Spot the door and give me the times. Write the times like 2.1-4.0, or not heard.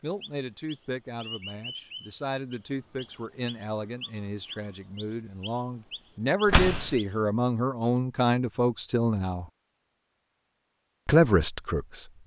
6.5-7.0.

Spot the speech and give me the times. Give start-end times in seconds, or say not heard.
0.0-9.4, 11.1-12.1.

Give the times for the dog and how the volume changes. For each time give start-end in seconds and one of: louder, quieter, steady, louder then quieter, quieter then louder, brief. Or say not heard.
not heard.